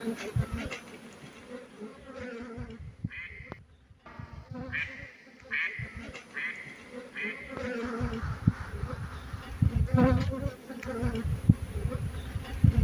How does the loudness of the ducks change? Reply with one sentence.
The volume of the ducks goes up, then down.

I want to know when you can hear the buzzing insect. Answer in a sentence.
You can hear the buzzing insect from 0.0 to 12.7 s.